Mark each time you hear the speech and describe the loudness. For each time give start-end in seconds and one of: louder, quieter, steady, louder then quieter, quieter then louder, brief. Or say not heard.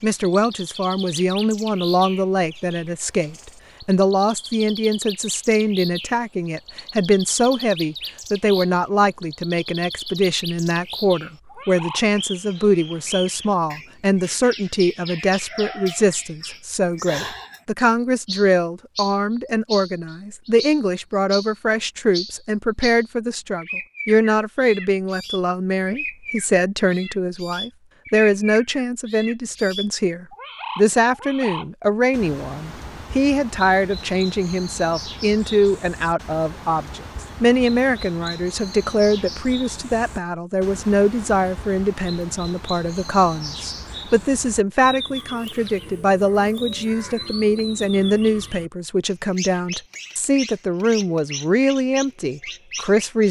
0.0-53.2 steady.